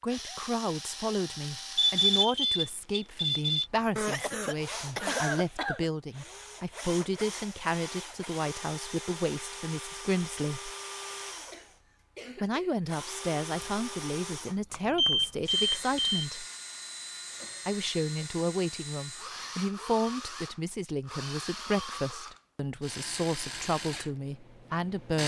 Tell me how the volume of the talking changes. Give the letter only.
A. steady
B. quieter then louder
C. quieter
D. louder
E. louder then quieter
A.